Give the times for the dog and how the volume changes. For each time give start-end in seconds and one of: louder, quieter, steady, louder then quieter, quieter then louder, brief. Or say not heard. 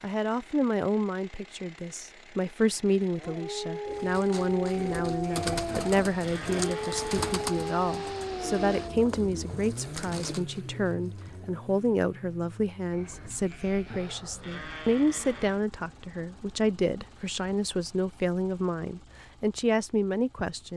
3.1-9.1 steady.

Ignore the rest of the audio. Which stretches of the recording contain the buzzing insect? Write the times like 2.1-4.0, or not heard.
not heard.